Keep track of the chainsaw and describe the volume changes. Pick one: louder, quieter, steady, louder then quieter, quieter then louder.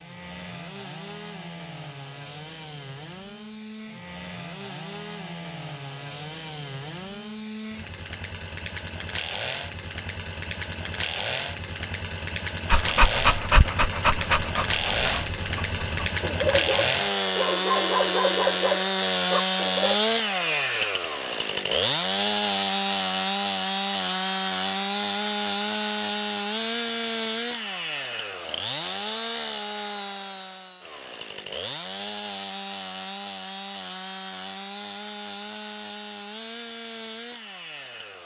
louder then quieter.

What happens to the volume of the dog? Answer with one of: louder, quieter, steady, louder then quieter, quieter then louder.
quieter then louder.